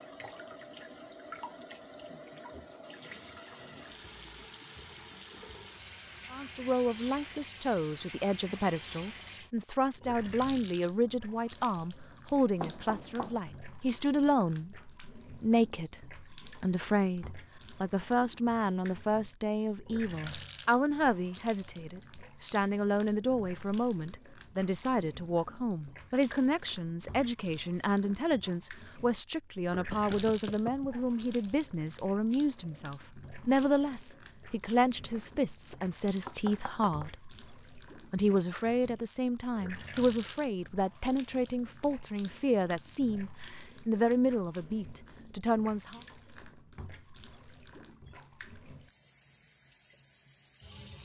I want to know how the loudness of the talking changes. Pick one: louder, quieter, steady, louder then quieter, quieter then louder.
steady.